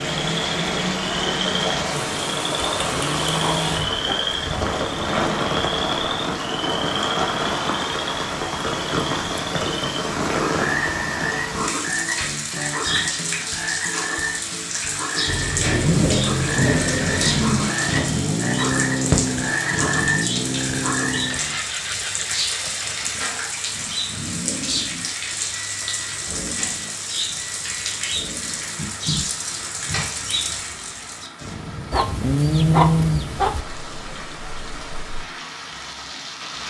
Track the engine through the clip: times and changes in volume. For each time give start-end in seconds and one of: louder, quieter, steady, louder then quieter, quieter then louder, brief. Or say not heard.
15.2-36.6 quieter.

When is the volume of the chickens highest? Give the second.
33 s.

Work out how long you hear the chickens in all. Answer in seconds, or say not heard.
3 s.